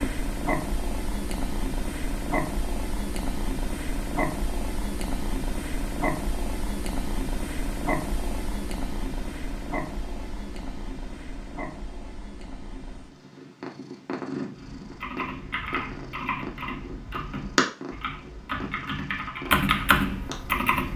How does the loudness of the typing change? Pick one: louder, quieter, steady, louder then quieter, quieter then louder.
louder.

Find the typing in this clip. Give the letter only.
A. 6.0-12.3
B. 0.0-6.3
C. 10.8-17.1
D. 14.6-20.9
D.